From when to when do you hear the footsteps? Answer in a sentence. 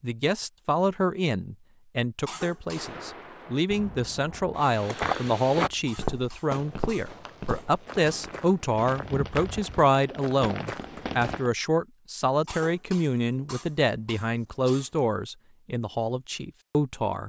You can hear the footsteps from 4.5 to 11.4 s.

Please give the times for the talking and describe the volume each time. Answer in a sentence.
You can hear the talking from 0.0 to 17.2 s, at a steady volume.